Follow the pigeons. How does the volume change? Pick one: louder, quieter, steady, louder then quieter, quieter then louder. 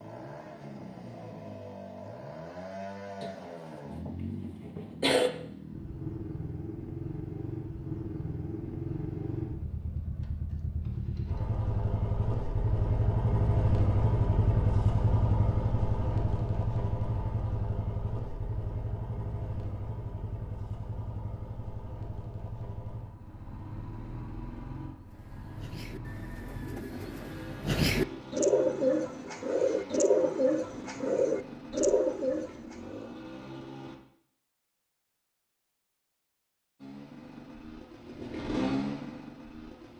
louder.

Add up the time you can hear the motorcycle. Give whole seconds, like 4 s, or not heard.
37 s.